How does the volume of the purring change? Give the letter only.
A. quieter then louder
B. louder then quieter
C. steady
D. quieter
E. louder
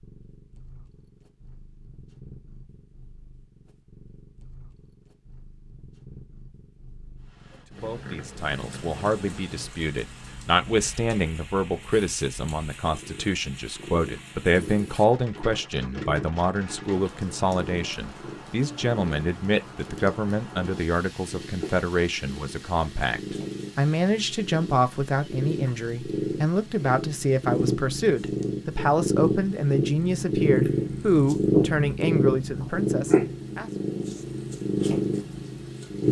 E.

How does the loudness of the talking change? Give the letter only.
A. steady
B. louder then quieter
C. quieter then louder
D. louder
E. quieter
A.